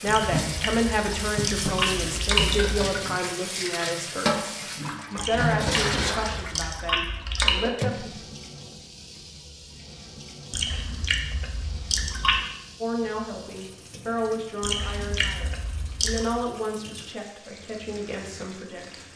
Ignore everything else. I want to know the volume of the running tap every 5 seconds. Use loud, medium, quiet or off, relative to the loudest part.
loud, loud, quiet, quiet.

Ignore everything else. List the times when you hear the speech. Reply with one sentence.
The speech can be heard from 0.0 to 8.2 s and from 12.8 to 18.9 s.